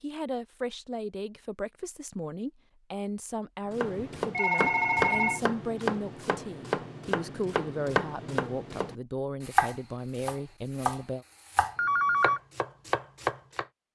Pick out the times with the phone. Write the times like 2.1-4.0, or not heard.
4.2-5.4, 11.8-12.4.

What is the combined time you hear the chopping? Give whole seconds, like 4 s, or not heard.
10 s.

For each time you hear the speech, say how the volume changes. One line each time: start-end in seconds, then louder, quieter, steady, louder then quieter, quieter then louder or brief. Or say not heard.
0.0-11.2 steady.